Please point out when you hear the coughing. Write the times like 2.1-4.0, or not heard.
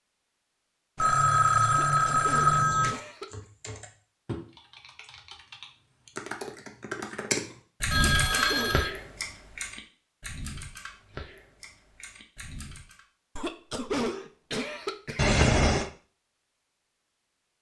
1.7-3.5, 8.0-8.8, 13.3-15.3.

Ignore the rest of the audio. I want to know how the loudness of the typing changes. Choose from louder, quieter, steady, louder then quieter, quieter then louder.
louder then quieter.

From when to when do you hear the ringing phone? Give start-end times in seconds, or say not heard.
0.9-3.0, 7.9-8.9, 15.2-15.9.